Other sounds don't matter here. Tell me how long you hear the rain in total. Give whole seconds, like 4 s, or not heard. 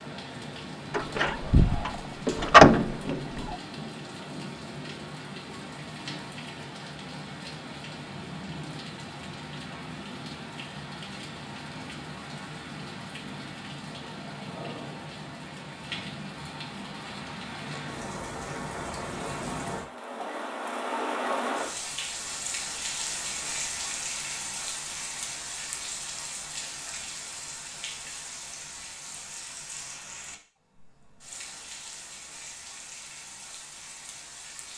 35 s.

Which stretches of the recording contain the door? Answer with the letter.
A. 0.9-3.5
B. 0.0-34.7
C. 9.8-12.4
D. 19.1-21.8
A.